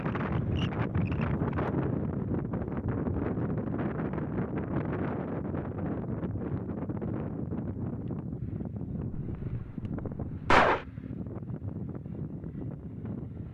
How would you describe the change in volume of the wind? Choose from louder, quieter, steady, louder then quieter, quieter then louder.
quieter.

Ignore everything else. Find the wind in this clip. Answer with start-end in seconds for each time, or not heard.
0.0-13.4.